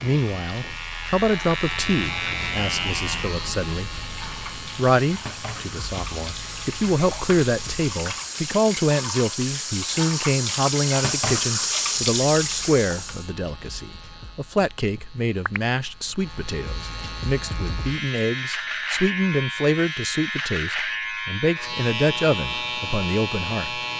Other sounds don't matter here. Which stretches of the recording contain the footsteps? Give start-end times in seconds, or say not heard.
not heard.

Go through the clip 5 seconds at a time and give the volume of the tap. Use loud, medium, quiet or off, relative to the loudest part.
quiet, medium, loud, off, off.